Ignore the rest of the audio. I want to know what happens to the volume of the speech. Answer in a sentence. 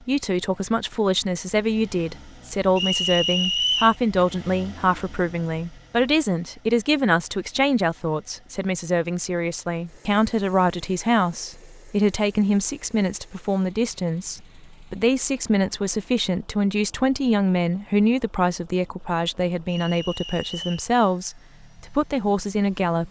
The loudness of the speech stays about the same.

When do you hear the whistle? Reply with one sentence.
You can hear the whistle from 2.8 to 4.0 s and from 19.6 to 20.9 s.